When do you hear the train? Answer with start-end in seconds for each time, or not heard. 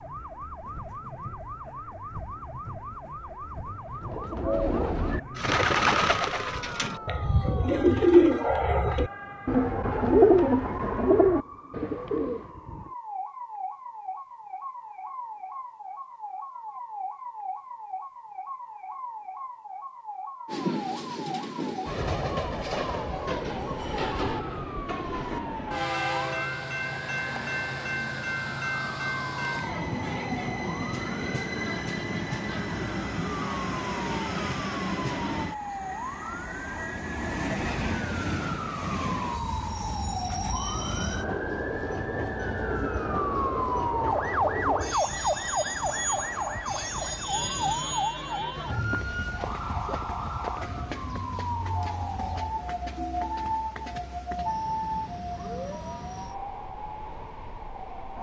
20.4-58.1.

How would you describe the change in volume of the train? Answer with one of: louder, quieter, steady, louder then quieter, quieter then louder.
quieter.